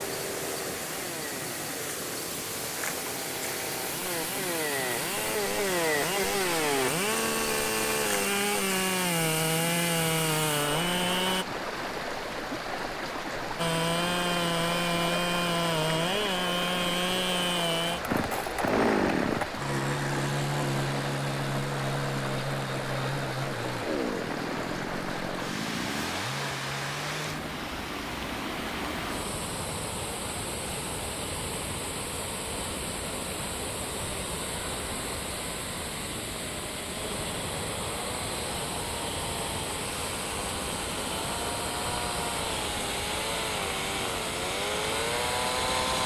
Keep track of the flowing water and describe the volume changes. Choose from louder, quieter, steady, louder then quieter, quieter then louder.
steady.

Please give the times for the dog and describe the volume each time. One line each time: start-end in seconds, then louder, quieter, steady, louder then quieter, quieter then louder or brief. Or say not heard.
not heard.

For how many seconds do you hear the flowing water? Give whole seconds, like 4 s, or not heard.
46 s.